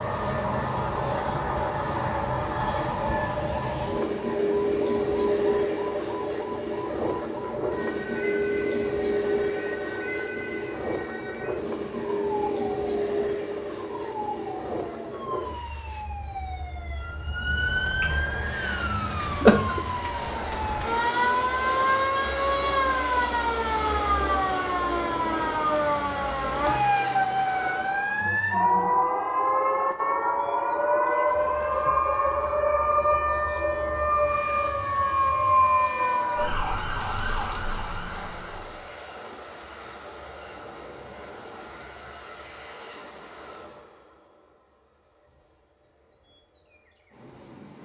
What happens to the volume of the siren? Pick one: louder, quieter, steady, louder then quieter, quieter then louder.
louder.